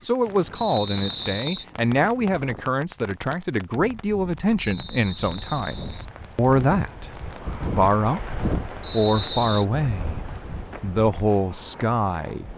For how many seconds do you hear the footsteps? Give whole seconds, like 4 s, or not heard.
not heard.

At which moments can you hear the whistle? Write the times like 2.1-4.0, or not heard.
0.6-1.6, 4.5-6.0, 8.8-9.7.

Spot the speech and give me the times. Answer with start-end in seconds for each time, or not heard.
0.0-10.2, 10.8-12.5.